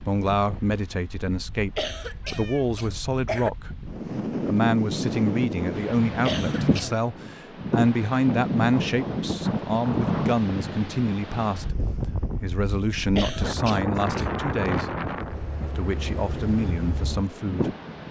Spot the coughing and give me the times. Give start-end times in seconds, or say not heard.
1.8-3.5, 6.2-7.0, 13.2-14.2.